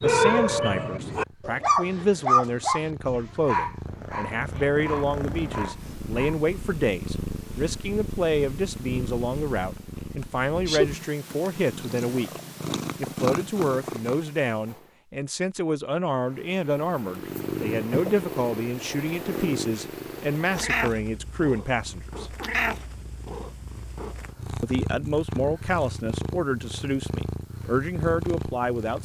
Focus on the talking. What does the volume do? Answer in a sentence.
The loudness of the talking stays about the same.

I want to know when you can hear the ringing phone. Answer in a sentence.
You can't hear the ringing phone here.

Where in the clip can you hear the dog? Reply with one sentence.
The dog can be heard from 0.0 to 6.5 s.